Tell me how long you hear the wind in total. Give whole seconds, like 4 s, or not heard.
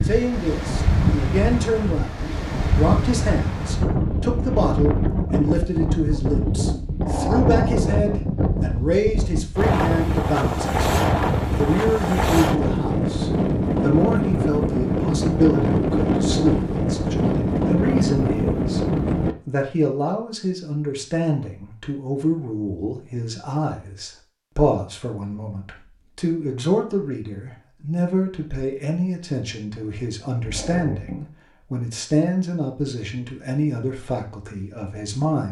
19 s.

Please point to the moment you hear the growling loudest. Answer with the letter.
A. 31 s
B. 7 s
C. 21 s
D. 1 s
B.